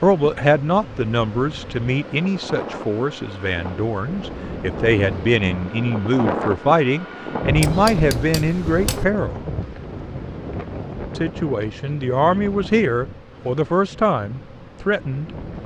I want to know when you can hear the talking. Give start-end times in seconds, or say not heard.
0.0-9.3, 11.2-15.3.